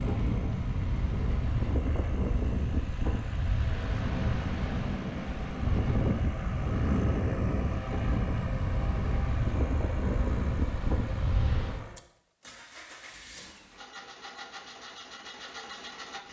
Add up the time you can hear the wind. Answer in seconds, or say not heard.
12 s.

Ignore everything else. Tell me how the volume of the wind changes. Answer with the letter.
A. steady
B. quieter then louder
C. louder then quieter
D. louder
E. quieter
A.